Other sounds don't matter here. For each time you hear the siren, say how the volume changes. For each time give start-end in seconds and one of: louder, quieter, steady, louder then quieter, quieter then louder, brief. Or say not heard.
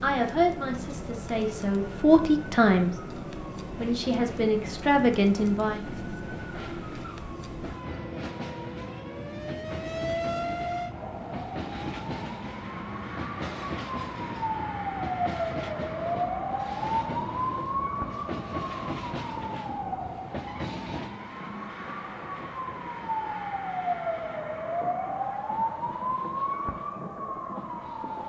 0.0-28.2 louder.